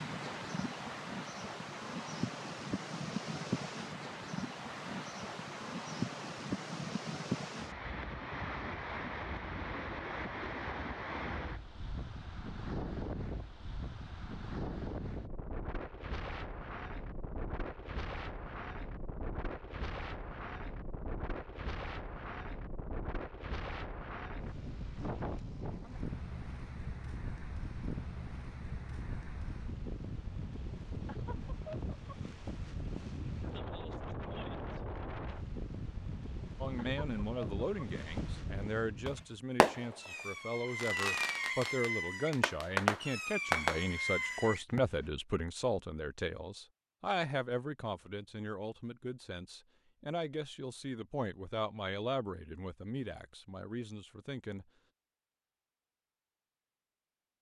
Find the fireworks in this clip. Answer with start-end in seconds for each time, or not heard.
39.0-44.8.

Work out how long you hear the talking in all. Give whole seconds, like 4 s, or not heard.
18 s.